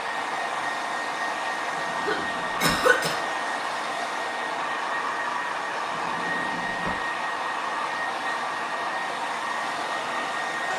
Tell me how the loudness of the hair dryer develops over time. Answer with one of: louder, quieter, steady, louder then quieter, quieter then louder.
steady.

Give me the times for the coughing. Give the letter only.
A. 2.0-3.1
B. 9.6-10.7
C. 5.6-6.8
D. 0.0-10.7
A.